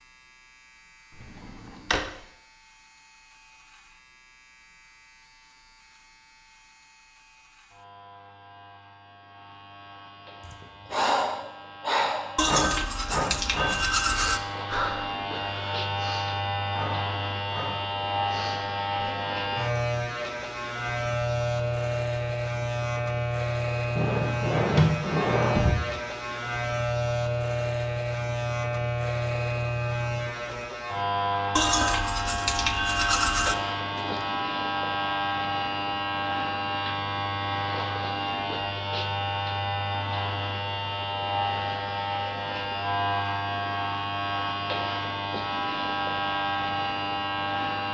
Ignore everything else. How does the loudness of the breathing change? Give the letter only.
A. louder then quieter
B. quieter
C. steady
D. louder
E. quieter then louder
B.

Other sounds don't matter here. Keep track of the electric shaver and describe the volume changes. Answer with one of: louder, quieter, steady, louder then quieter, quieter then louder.
louder.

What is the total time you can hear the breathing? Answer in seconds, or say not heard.
9 s.